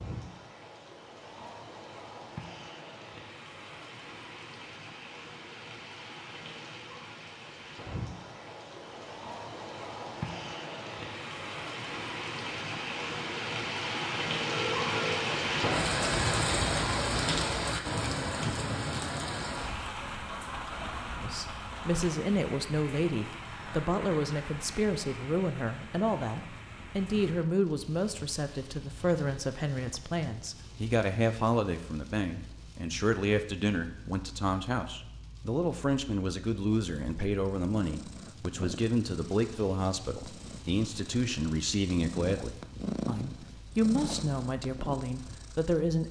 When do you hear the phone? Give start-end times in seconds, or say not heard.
14.4-15.2.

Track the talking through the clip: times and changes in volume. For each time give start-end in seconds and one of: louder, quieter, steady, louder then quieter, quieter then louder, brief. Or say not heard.
21.2-46.0 steady.